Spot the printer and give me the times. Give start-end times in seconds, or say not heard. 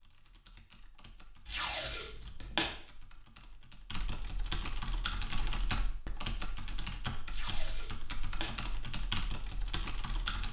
not heard.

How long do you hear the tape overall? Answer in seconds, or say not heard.
3 s.